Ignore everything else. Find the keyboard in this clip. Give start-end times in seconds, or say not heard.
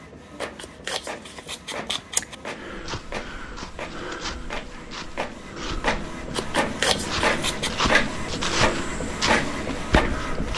not heard.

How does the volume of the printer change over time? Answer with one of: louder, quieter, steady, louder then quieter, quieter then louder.
louder.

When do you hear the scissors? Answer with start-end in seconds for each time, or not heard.
0.4-2.4, 6.3-7.9.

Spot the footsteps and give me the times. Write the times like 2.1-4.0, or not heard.
2.5-10.5.